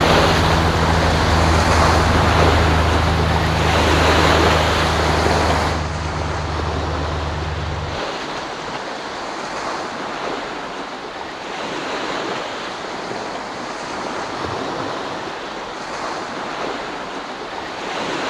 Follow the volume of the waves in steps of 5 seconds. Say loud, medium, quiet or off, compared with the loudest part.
loud, medium, medium, medium.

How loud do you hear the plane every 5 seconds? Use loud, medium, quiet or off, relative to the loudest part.
loud, medium, off, off.